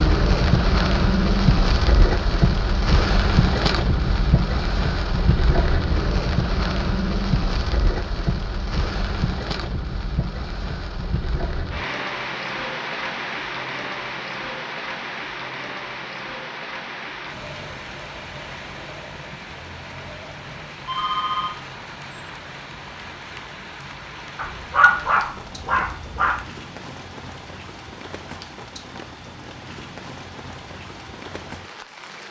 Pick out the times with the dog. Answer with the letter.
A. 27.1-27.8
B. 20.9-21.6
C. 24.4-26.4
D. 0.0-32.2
C.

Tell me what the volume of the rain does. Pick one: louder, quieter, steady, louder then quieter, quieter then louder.
quieter.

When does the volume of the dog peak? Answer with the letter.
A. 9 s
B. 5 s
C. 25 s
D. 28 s
C.